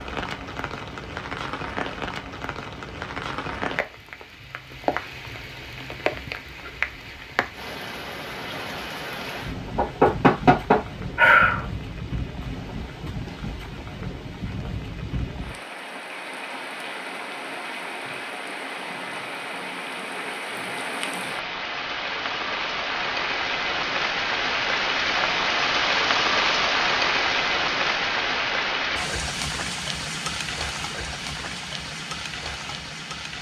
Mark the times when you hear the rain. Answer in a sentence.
You can hear the rain from 0.0 to 33.3 s.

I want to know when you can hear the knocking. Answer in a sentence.
The knocking can be heard from 9.8 to 11.7 s.